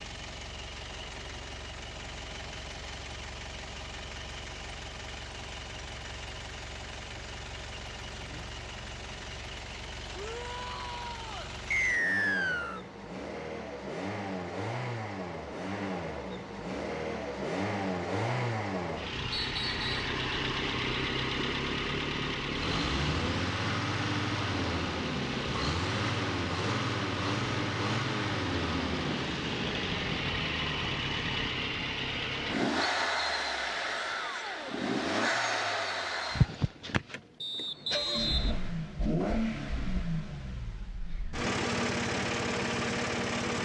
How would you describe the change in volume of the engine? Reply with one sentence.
The loudness of the engine goes up.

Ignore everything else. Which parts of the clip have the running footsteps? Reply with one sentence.
You can't hear the running footsteps here.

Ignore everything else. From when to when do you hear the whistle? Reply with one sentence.
The whistle can be heard from 11.7 to 12.8 s, from 19.3 to 20.1 s and from 37.4 to 38.7 s.